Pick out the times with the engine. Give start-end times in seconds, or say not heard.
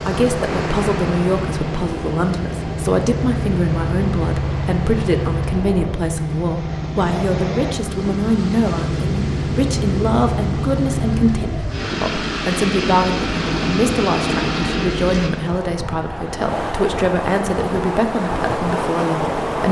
0.0-15.3.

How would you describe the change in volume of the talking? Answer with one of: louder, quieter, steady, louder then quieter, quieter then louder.
steady.